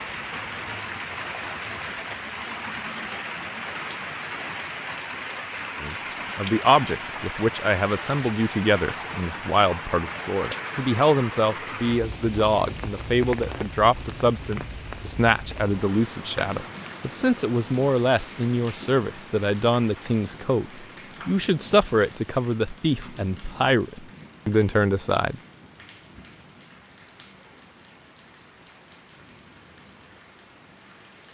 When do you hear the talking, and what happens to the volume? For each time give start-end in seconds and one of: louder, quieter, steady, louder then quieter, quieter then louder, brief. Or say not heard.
5.8-25.4 steady.